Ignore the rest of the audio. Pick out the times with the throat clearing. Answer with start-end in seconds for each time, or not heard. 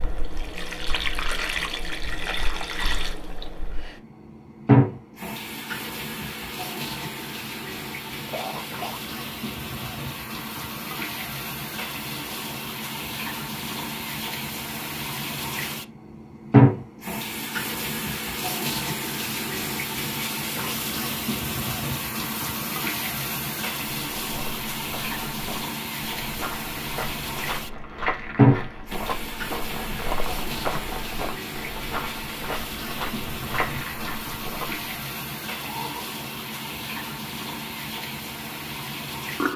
8.2-9.0, 35.6-36.1.